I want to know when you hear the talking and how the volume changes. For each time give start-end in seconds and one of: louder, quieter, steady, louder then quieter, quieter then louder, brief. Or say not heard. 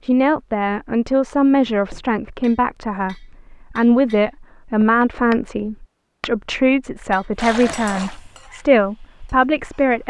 0.0-10.0 steady.